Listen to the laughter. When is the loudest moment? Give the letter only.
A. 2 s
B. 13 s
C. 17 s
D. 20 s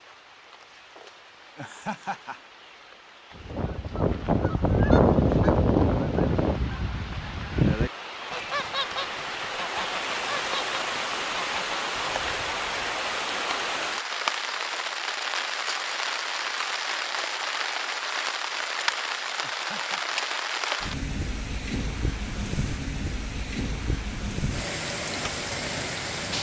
A.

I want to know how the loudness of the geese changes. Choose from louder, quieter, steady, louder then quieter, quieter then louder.
quieter.